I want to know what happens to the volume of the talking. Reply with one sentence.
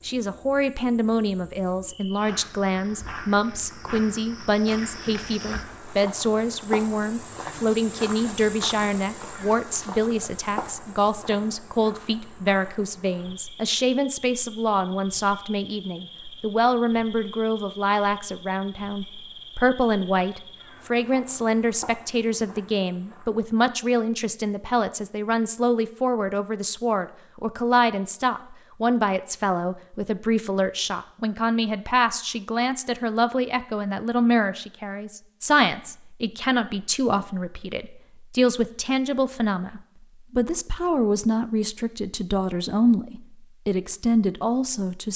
The loudness of the talking stays about the same.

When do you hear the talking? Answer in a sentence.
You can hear the talking from 0.0 to 45.1 s.